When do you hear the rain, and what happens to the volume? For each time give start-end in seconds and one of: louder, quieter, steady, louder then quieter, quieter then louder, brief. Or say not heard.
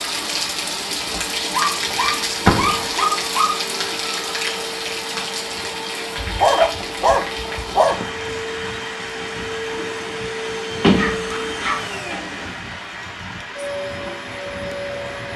0.0-15.3 quieter.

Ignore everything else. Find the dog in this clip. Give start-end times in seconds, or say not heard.
1.5-3.5, 6.2-8.0, 10.9-11.8.